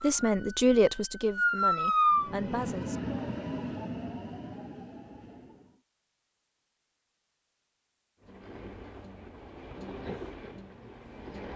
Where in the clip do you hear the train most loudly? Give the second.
3 s.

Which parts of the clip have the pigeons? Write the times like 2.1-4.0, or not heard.
not heard.